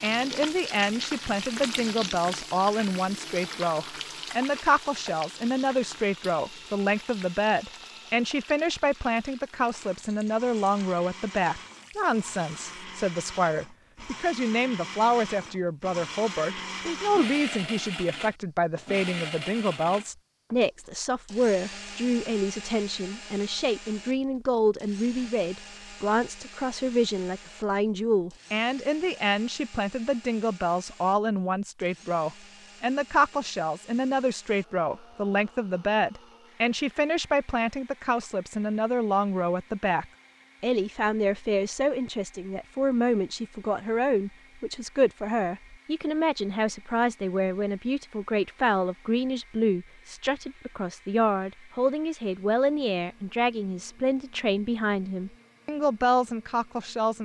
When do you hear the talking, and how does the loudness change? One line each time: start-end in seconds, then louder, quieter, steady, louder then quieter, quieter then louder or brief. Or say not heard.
0.0-57.1 steady.